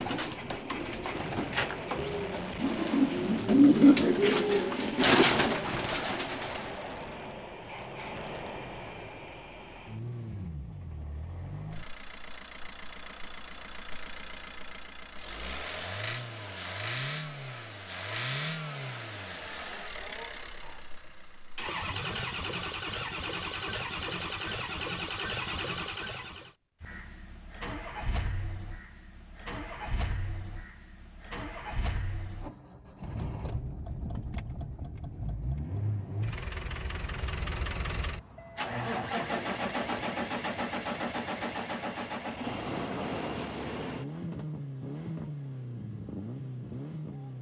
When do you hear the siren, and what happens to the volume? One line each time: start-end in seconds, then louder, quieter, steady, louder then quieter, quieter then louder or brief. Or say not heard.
not heard.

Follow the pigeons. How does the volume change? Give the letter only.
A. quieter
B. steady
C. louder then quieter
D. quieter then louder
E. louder
C.